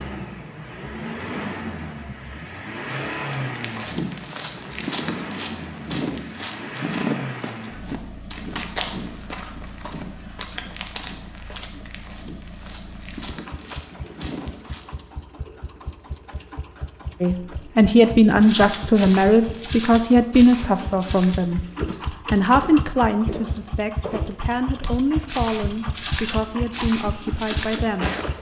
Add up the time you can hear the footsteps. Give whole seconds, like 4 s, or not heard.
21 s.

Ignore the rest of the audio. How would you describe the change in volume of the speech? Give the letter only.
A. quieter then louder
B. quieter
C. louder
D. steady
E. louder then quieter
B.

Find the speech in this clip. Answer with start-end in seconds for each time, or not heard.
17.2-28.2.